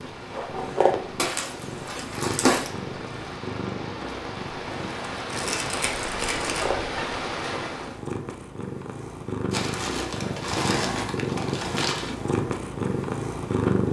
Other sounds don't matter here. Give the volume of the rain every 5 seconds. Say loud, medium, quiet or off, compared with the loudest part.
medium, loud, off.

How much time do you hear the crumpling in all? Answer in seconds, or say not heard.
6 s.